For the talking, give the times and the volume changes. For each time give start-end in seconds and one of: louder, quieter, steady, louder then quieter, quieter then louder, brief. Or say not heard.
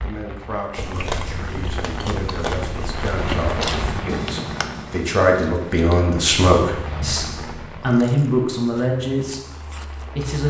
0.0-10.4 louder.